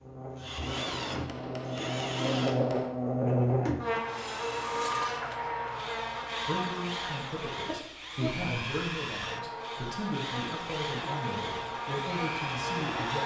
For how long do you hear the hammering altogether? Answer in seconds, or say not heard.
2 s.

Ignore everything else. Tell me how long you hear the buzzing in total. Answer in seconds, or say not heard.
13 s.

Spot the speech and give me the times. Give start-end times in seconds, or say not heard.
6.5-13.2.